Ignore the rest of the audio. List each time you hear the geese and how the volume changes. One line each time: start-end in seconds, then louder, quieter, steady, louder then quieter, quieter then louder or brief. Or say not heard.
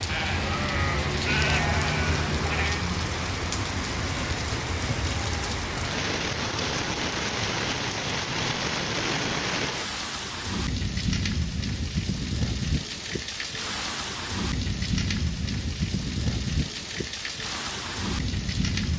not heard.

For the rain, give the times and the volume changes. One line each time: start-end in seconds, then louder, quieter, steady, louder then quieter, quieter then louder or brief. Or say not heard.
0.0-18.9 steady.